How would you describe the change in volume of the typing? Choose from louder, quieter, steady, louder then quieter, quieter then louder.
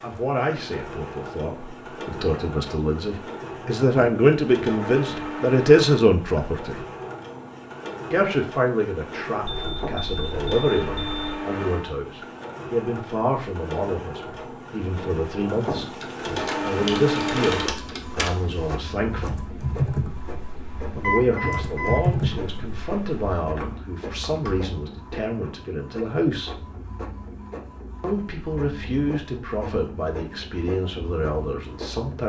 louder then quieter.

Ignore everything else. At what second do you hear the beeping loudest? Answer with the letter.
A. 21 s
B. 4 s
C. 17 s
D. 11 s
A.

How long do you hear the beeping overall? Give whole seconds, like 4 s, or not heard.
3 s.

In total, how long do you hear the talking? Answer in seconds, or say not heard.
28 s.